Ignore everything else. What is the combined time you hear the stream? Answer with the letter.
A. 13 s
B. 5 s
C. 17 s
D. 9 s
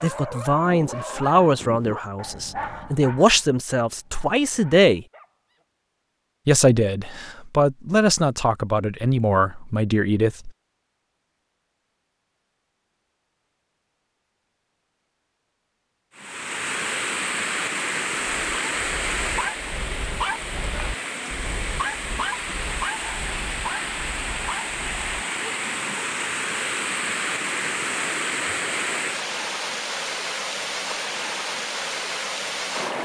C.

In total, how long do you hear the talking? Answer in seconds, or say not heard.
9 s.